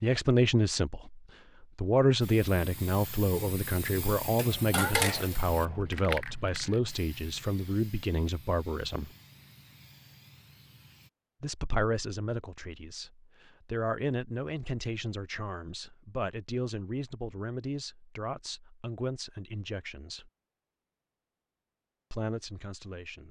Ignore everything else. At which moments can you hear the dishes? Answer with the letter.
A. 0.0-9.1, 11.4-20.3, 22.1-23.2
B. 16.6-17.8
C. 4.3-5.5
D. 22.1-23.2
C.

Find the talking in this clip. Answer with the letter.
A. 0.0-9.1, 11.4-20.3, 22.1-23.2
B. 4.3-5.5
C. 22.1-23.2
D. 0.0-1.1
A.